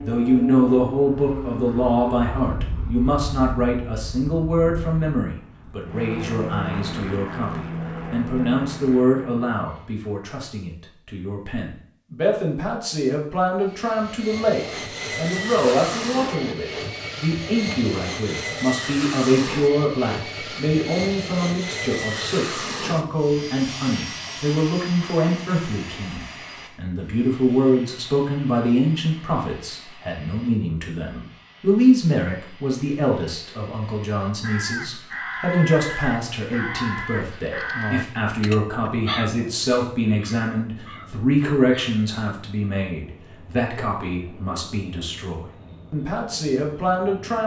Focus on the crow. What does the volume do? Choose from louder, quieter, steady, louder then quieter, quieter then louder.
quieter.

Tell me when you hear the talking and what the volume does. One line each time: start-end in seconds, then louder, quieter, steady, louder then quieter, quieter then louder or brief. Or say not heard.
0.0-47.4 steady.